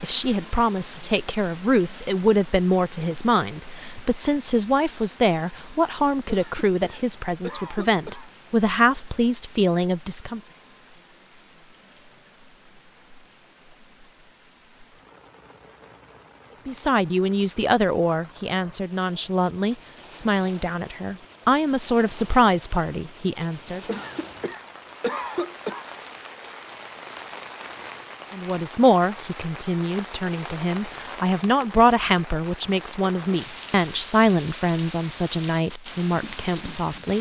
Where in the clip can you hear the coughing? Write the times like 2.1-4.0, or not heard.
6.2-8.3, 23.9-25.9.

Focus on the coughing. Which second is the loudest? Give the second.
25 s.